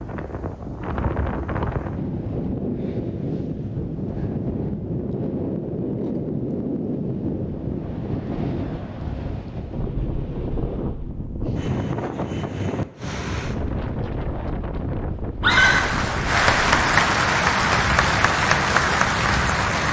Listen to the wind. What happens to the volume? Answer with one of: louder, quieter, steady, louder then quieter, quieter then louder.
steady.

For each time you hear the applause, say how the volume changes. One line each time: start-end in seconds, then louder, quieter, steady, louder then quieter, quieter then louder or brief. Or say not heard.
15.5-19.8 steady.